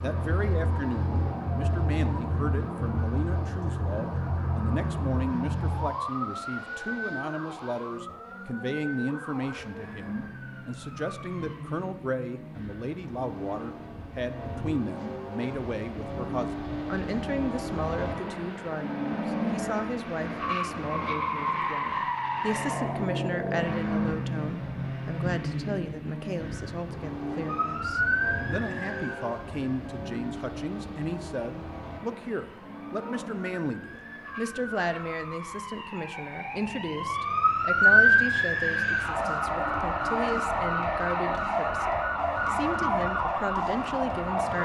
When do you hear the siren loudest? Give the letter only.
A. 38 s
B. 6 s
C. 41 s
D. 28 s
A.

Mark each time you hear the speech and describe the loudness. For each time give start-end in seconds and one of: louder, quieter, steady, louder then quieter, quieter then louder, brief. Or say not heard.
0.0-44.5 steady.